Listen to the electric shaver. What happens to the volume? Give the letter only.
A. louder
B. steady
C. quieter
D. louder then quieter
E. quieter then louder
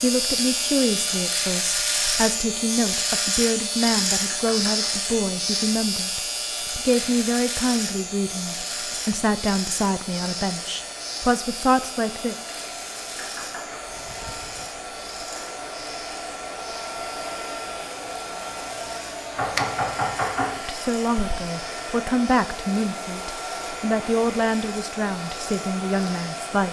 C.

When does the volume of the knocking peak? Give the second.
20 s.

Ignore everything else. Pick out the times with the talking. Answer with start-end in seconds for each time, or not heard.
0.0-12.3, 20.6-26.6.